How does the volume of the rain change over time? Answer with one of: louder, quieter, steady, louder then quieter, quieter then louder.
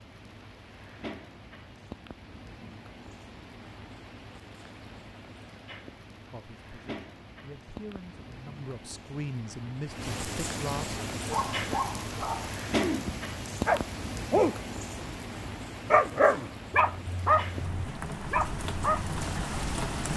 louder.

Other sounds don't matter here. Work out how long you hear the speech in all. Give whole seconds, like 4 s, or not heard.
5 s.